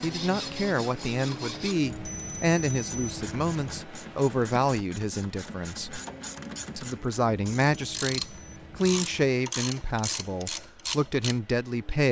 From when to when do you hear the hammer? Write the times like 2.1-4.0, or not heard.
not heard.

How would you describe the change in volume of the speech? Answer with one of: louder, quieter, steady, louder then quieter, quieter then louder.
steady.